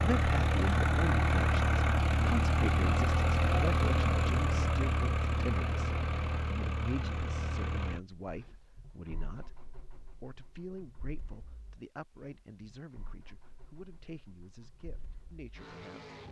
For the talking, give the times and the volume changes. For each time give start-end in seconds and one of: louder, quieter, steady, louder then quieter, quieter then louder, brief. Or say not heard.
0.0-16.1 quieter.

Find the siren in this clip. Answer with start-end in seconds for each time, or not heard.
not heard.